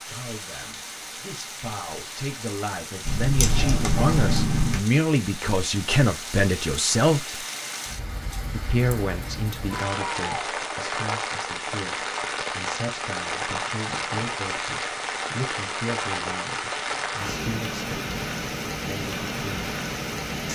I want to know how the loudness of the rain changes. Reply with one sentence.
The loudness of the rain goes up.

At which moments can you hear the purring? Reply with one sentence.
You can hear the purring from 3.0 to 4.8 s.